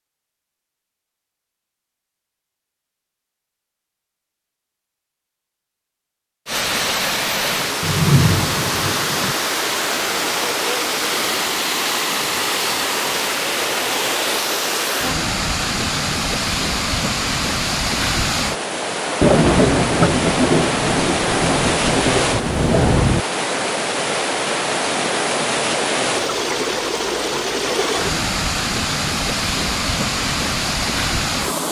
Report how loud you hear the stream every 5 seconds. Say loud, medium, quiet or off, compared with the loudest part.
off, loud, loud, loud, loud, loud, loud.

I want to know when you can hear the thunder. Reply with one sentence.
The thunder can be heard from 7.8 to 9.3 s and from 19.2 to 23.2 s.